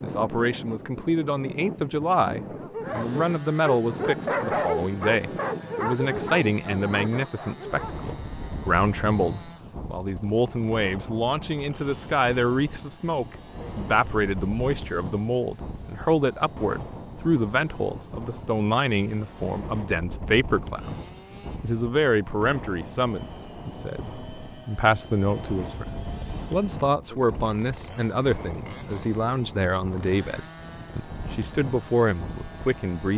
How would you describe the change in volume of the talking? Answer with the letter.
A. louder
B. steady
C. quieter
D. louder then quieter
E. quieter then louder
B.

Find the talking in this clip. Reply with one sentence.
You can hear the talking from 0.0 to 20.9 s and from 21.6 to 33.1 s.